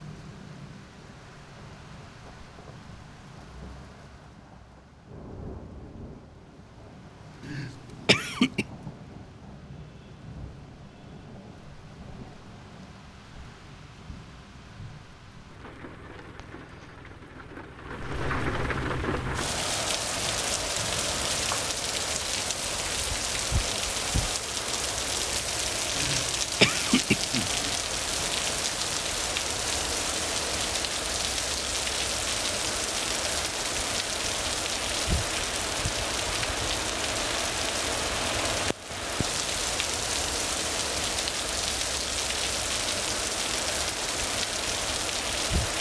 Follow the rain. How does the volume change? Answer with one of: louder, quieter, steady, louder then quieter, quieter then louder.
louder.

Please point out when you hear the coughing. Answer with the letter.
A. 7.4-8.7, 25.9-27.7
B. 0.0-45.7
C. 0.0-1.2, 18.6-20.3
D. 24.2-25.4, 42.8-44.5
A.